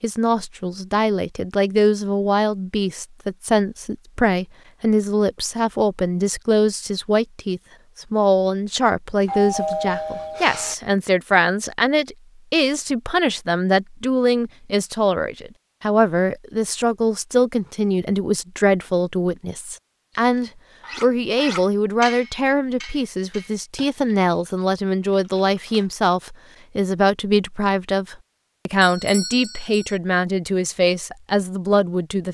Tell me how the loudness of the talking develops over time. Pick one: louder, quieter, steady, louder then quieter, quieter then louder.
steady.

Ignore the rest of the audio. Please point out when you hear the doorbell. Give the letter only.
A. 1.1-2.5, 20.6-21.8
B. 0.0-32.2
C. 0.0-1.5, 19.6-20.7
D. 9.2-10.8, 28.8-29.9
D.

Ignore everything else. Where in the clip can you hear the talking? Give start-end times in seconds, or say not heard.
0.0-32.2.